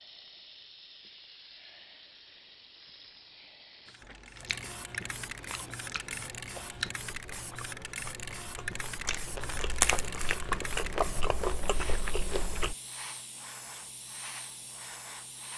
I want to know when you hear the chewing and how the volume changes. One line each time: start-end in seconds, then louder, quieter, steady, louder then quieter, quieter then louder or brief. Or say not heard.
4.0-12.8 louder.